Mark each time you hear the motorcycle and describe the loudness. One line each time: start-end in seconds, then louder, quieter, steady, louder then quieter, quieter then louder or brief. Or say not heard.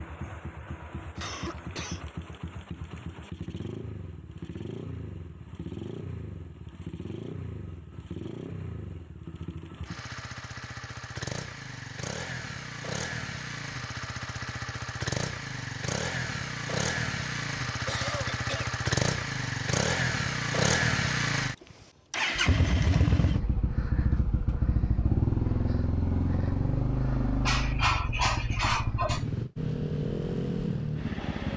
0.0-31.5 louder.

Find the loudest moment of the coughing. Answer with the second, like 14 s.
28 s.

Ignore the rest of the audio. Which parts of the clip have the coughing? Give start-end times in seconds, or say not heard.
1.1-2.0, 17.8-18.8, 27.4-29.2.